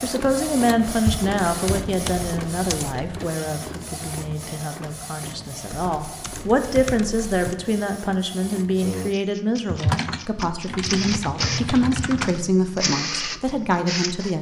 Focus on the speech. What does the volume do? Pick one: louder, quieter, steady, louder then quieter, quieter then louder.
quieter then louder.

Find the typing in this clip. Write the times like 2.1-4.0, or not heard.
1.1-3.0, 5.7-7.5, 9.7-12.4.